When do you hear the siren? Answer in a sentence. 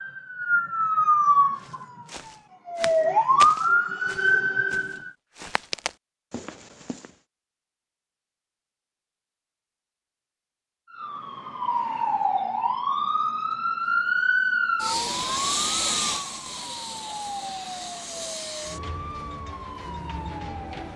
You can hear the siren from 0.0 to 5.1 s and from 10.9 to 20.9 s.